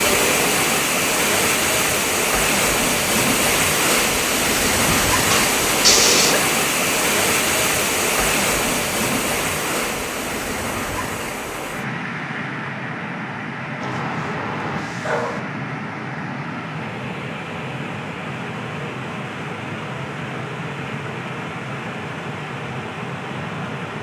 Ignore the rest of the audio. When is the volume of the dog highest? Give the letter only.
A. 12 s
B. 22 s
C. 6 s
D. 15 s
C.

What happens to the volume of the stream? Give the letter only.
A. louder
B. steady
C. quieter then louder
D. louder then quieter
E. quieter
E.